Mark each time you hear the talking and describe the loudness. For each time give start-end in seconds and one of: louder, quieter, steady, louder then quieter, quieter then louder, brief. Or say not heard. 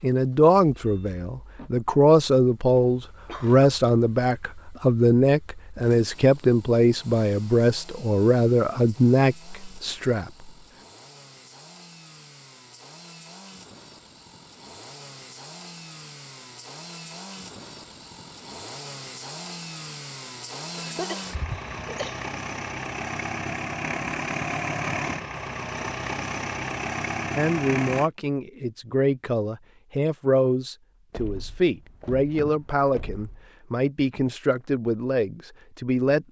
0.0-10.5 steady
27.4-36.2 steady.